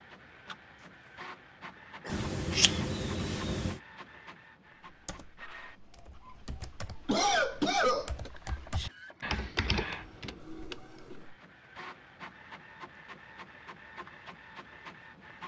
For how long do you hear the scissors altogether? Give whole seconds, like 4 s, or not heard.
2 s.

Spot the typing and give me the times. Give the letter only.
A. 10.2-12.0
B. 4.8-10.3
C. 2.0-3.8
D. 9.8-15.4
B.